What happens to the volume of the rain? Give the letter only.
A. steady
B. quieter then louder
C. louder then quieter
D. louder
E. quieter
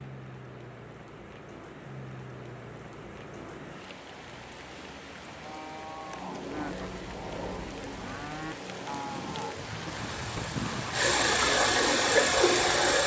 D.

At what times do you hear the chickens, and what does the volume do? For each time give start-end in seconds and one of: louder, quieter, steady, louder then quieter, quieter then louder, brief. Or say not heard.
not heard.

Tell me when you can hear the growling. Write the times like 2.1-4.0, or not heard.
not heard.